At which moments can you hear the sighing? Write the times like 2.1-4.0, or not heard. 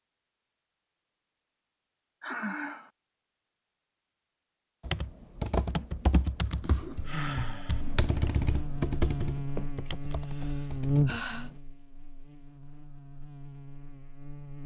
2.2-2.9, 7.0-7.8, 9.8-11.5.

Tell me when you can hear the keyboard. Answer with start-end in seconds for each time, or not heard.
4.8-11.4.